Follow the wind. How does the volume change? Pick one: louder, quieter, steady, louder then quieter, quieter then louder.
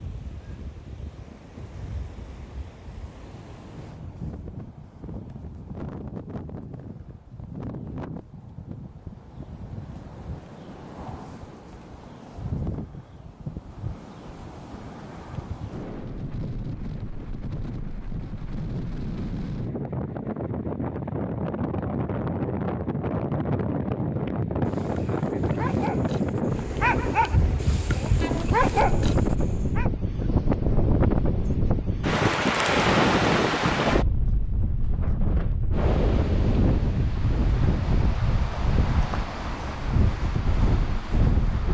louder.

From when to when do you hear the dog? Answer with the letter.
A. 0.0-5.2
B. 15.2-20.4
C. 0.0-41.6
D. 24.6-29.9
D.